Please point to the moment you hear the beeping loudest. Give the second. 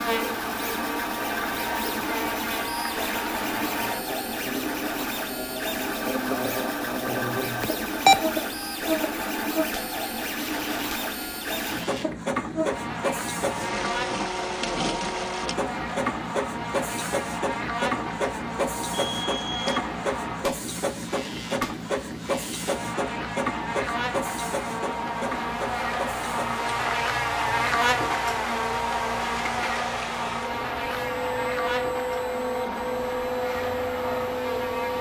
8 s.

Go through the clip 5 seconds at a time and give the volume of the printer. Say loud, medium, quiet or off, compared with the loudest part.
loud, loud, loud, loud, loud, medium, loud.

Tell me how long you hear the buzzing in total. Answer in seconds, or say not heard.
35 s.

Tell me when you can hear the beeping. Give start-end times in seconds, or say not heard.
7.6-8.2, 18.9-19.8.